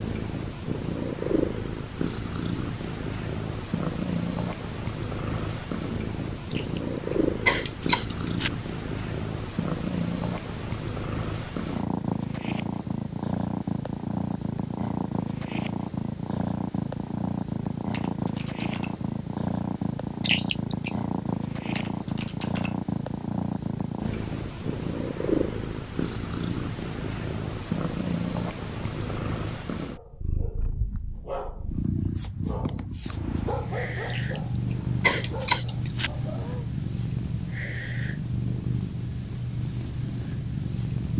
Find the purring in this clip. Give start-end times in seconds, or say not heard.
0.0-41.1.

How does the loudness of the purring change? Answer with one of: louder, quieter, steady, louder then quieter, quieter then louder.
steady.